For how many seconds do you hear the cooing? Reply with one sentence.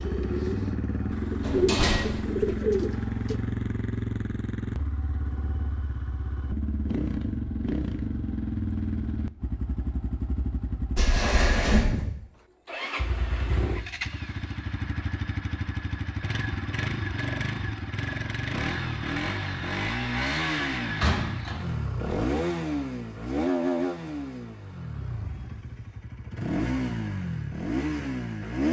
You can hear the cooing for 3 seconds altogether.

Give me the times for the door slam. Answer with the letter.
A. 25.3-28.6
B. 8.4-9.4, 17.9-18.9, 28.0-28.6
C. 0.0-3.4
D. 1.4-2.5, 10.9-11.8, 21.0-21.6
D.